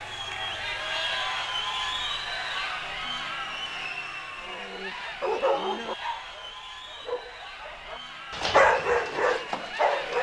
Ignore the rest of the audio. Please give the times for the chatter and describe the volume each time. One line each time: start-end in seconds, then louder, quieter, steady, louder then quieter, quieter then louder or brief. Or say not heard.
0.0-10.1 quieter.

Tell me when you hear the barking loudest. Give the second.
9 s.